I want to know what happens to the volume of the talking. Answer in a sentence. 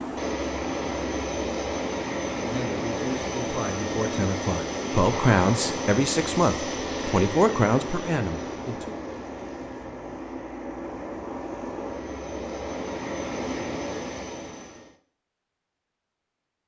The volume of the talking goes up.